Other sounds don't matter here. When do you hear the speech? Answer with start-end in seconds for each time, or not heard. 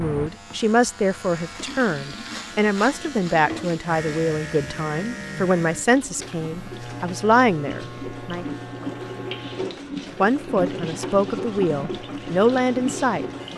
0.0-8.4, 10.2-13.2.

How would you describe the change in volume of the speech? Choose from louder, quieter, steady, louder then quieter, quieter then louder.
steady.